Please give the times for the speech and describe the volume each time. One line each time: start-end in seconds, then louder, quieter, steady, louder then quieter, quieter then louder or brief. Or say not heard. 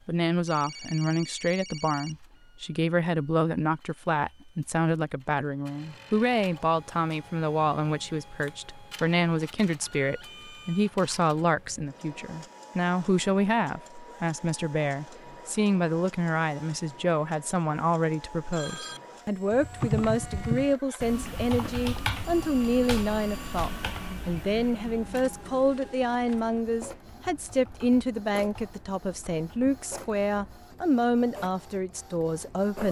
0.1-32.8 steady.